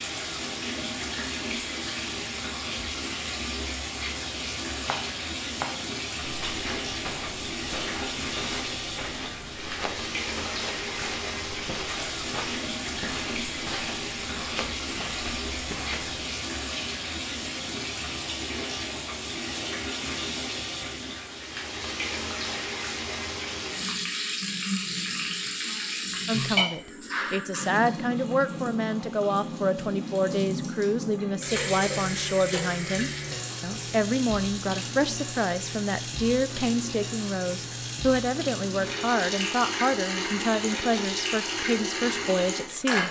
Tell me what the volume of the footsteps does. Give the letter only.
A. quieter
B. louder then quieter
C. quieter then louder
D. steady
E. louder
D.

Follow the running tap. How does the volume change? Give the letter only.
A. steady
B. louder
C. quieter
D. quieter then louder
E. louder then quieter
A.